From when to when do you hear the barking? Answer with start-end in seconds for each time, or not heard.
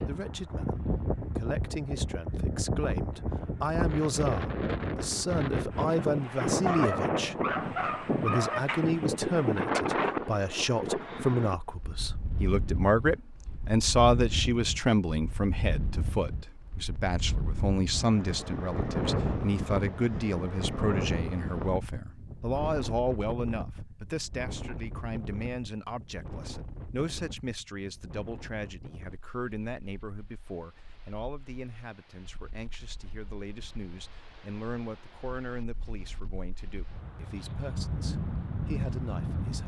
6.6-8.6.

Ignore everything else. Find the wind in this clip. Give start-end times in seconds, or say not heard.
0.0-39.6.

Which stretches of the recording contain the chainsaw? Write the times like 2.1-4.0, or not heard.
not heard.